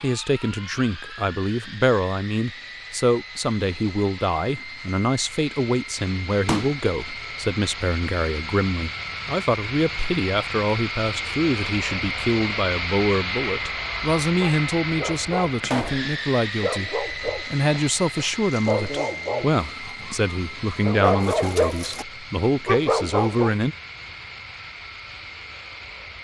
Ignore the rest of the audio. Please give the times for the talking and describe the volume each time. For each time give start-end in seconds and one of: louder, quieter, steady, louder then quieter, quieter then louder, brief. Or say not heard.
0.0-23.8 steady.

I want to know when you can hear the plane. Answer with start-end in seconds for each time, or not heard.
0.0-26.1.